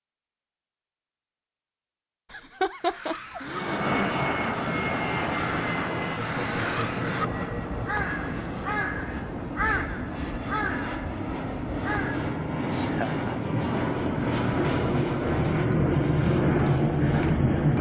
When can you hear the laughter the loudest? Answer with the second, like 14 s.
3 s.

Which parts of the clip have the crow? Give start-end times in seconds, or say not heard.
2.7-12.5.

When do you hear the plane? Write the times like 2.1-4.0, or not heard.
3.4-17.7.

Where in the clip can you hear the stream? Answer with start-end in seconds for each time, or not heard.
not heard.